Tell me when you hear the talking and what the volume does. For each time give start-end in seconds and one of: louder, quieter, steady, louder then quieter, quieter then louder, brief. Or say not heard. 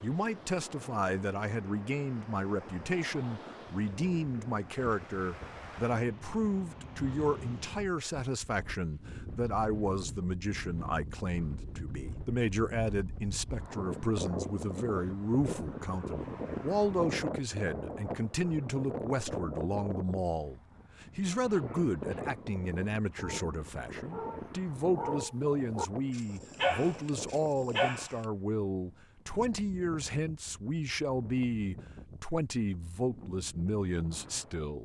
0.0-34.8 steady.